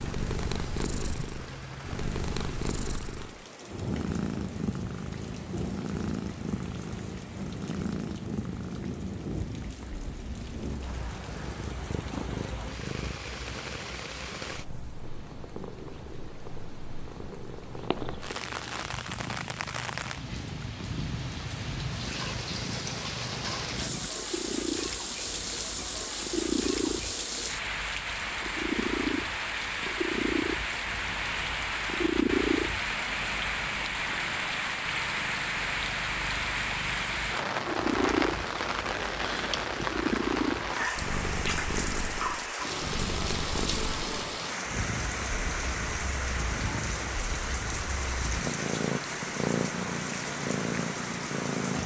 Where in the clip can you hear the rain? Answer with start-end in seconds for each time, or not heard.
0.0-51.8.